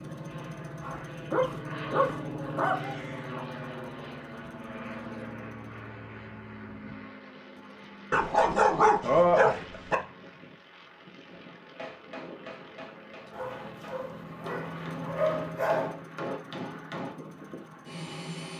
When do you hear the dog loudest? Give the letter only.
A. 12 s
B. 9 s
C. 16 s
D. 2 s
B.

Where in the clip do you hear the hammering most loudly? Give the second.
16 s.